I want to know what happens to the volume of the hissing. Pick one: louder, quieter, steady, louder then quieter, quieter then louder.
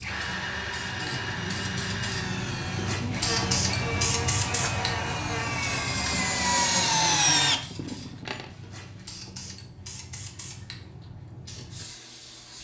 louder then quieter.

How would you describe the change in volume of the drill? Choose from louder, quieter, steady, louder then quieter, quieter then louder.
louder.